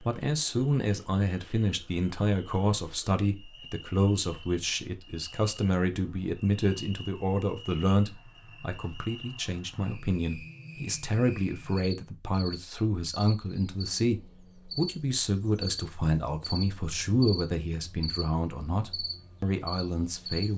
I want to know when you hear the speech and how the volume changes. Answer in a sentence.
The speech can be heard from 0.0 to 20.5 s, at a steady volume.